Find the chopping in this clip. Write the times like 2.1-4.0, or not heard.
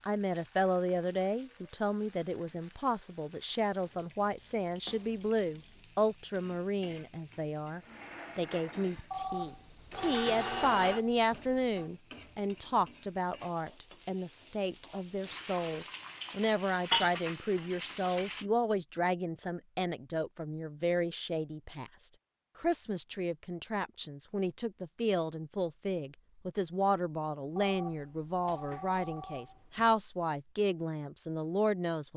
not heard.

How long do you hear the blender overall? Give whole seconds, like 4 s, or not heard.
4 s.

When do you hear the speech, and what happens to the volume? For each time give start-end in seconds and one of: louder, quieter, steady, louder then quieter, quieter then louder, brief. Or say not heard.
0.0-32.1 steady.